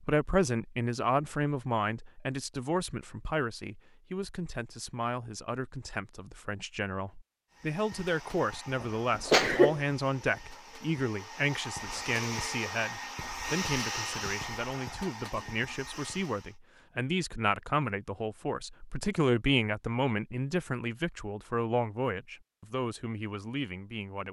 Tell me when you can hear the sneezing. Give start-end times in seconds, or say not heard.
8.8-9.8.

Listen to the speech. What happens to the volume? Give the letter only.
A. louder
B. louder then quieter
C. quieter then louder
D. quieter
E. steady
E.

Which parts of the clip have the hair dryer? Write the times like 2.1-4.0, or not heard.
7.5-16.6.